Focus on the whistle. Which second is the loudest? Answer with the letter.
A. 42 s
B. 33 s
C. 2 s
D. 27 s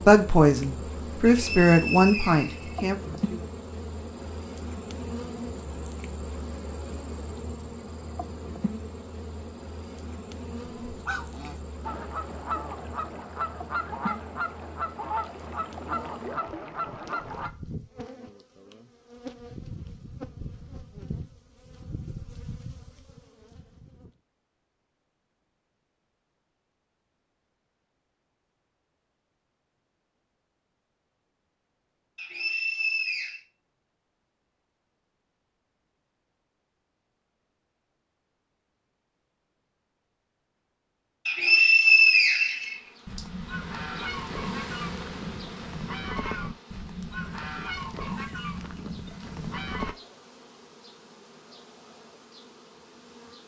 A.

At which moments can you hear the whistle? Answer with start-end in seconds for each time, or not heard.
1.2-3.2, 32.1-33.4, 41.2-43.2.